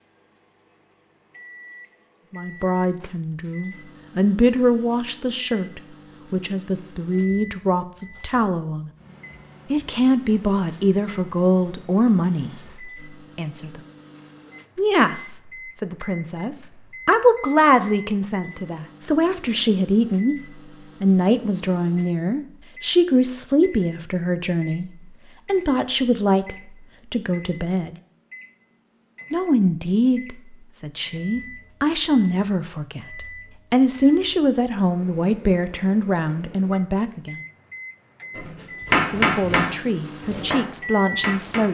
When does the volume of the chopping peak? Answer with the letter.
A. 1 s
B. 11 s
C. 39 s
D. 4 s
C.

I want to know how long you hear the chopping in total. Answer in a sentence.
You can hear the chopping for 3 seconds altogether.